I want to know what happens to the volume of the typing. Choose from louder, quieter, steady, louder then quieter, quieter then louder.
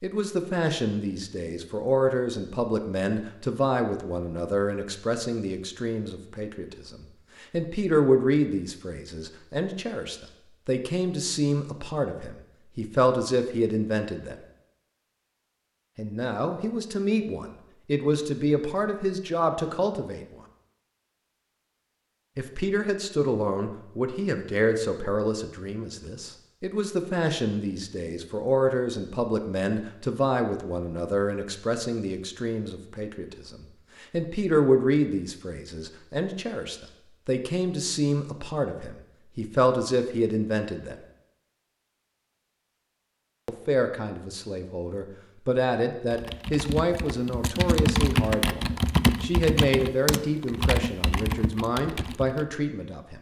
louder then quieter.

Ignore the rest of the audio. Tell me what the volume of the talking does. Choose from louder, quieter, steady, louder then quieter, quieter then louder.
steady.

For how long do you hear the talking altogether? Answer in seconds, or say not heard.
47 s.